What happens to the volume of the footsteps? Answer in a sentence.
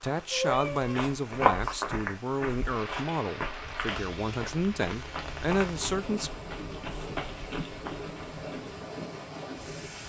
The loudness of the footsteps goes down.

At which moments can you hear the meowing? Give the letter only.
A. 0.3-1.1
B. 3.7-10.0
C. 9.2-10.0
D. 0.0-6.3
A.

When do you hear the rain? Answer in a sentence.
You can hear the rain from 0.0 to 10.0 s.